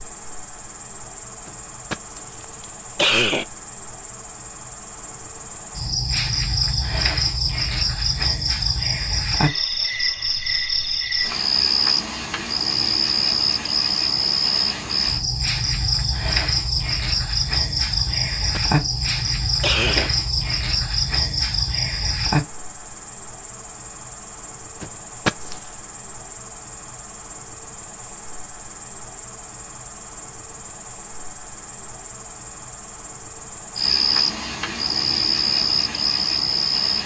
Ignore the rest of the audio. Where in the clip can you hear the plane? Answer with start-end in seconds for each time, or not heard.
not heard.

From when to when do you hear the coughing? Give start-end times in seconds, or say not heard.
1.4-3.5, 18.1-18.6, 19.6-20.1, 24.8-25.6.